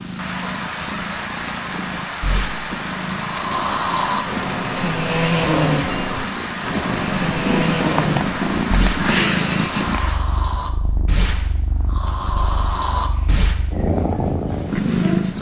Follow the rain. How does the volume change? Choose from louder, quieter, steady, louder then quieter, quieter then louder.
steady.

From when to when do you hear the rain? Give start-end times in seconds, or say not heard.
0.0-10.2.